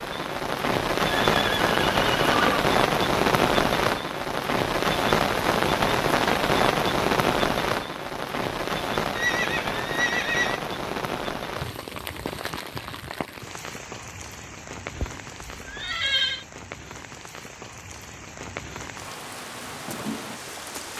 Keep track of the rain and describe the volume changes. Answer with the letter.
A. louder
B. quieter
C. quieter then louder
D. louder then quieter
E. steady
B.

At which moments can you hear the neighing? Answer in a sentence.
The neighing can be heard from 1.2 to 2.6 s, from 9.2 to 10.6 s and from 14.9 to 16.4 s.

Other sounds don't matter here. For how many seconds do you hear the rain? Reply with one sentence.
You can hear the rain for 21 seconds altogether.